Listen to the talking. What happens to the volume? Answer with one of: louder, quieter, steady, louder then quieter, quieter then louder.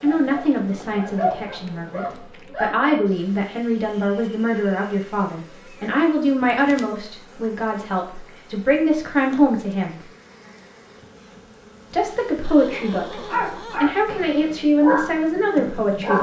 steady.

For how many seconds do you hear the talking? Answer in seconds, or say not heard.
14 s.